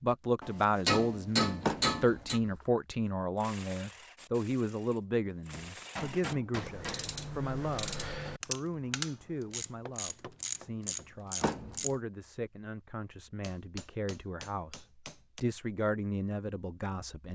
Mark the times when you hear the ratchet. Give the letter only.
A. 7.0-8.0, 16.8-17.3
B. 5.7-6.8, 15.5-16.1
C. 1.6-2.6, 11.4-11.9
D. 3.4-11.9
D.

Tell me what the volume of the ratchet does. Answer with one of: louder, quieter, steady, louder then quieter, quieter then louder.
louder.